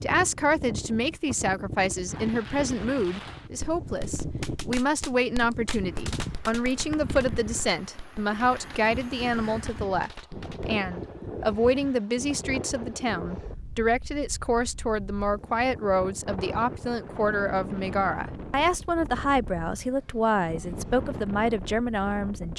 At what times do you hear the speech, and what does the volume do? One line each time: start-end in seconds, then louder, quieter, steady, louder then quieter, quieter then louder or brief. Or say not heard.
0.0-22.5 steady.